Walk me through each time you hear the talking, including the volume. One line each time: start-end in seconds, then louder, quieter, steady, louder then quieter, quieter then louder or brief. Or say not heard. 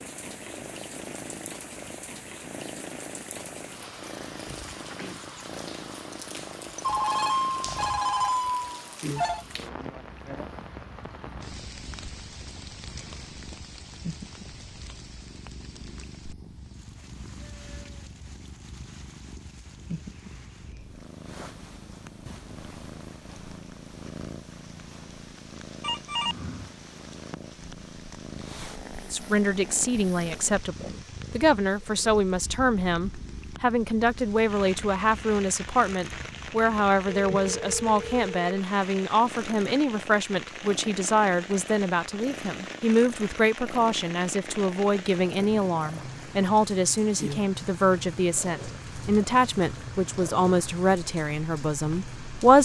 29.1-52.6 steady.